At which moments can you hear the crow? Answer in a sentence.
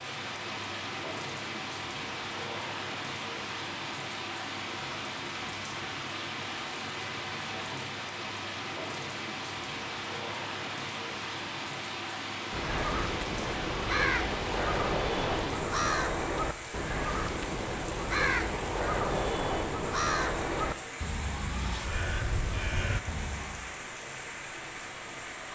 The crow can be heard from 12.5 to 23.7 s.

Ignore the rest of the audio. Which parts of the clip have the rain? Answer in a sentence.
The rain can be heard from 0.0 to 25.5 s.